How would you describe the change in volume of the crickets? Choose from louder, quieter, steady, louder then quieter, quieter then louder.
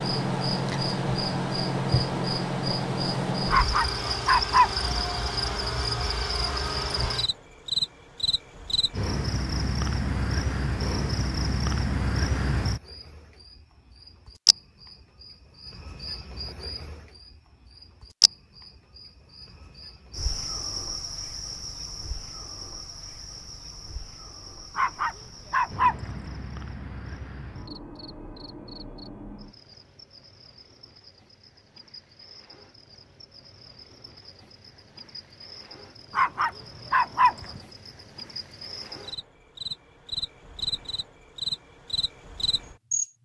quieter then louder.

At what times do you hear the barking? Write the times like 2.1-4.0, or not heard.
3.5-5.3, 24.8-26.3, 36.1-37.6.